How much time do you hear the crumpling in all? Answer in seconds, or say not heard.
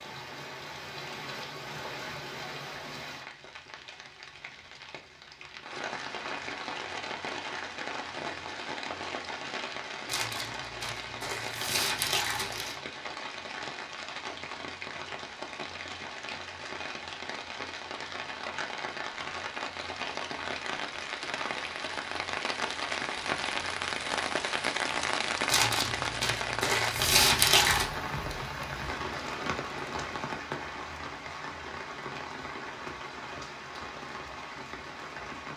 5 s.